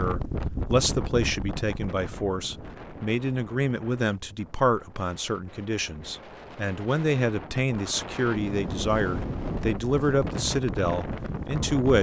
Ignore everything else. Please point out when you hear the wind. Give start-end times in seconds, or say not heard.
0.0-11.9.